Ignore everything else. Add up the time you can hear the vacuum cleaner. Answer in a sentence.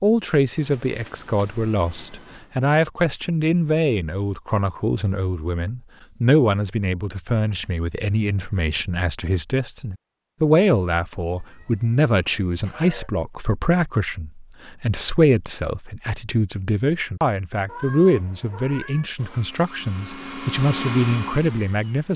You can hear the vacuum cleaner for 3 seconds altogether.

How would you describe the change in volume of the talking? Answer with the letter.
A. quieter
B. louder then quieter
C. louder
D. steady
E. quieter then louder
D.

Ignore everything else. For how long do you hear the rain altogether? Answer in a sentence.
The rain can't be heard in this clip.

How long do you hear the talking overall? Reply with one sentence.
You can hear the talking for 22 seconds altogether.